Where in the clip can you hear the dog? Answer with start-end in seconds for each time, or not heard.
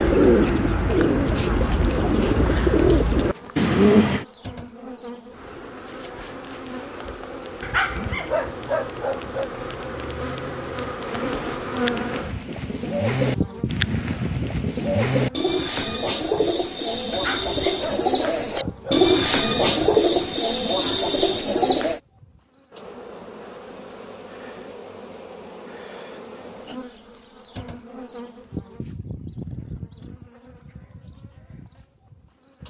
7.6-9.5, 17.1-19.1.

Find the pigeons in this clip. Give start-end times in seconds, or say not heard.
0.0-4.2, 11.1-22.0.